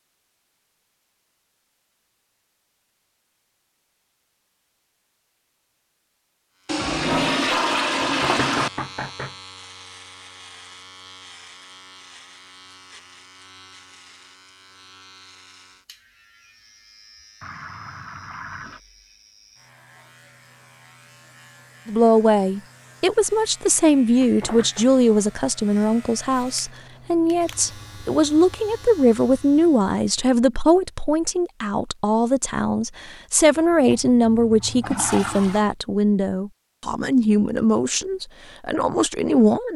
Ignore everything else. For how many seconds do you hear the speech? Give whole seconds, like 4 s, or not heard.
18 s.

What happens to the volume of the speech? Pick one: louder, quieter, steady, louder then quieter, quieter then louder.
steady.